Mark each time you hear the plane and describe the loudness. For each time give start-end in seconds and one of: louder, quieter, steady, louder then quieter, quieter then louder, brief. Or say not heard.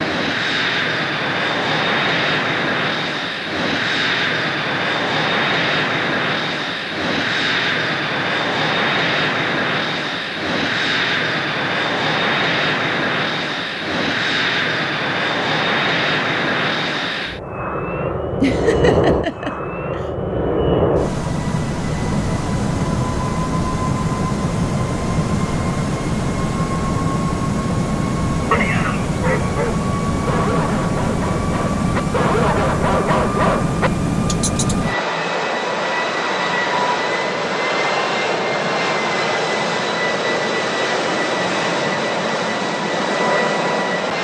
0.0-44.1 steady.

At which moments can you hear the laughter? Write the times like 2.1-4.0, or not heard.
18.4-20.0, 28.5-29.6.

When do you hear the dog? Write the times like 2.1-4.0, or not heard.
28.4-34.8.